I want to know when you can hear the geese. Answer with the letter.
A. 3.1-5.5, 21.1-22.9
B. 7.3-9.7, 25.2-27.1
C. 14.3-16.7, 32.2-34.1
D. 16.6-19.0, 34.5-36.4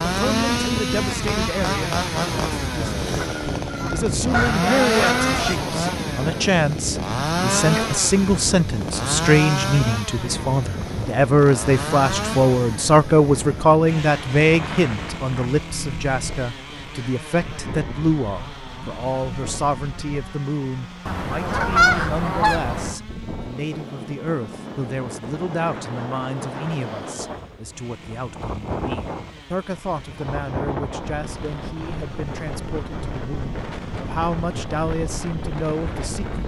A.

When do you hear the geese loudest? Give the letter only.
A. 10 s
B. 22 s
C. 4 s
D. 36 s
B.